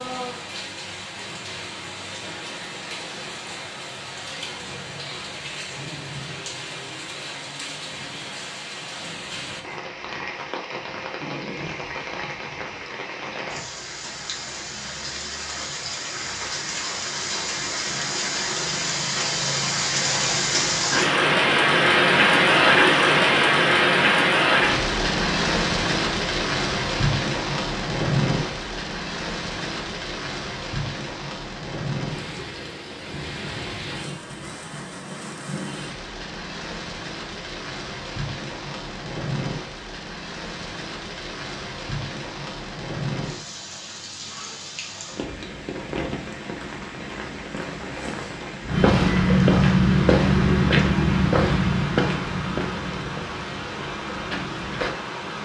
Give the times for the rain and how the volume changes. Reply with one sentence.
You can hear the rain from 0.0 to 55.4 s, getting louder then quieter.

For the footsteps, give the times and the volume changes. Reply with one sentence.
You can hear the footsteps from 48.6 to 54.9 s, getting quieter.